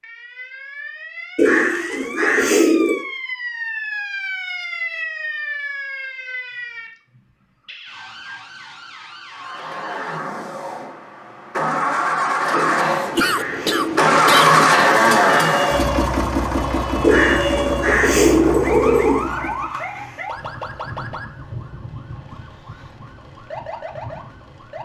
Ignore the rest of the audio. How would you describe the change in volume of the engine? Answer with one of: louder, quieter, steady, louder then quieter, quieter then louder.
louder then quieter.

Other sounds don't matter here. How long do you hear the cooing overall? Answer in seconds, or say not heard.
6 s.